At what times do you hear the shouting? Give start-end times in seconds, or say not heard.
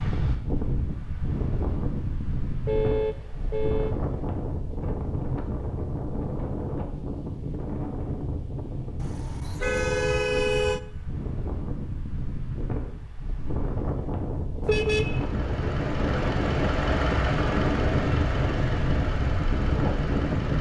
not heard.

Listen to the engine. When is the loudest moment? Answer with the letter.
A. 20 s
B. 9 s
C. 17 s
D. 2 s
C.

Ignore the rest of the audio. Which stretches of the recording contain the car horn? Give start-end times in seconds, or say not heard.
2.6-4.0, 8.9-10.8, 14.6-15.2.